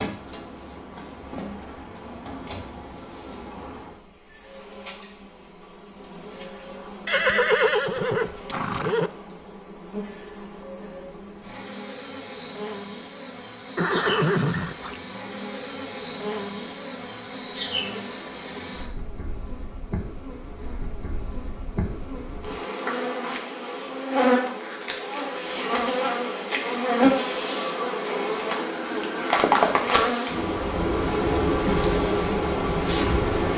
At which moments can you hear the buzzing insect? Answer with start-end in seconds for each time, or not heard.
0.0-33.5.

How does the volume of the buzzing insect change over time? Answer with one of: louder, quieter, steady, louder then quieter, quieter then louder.
louder.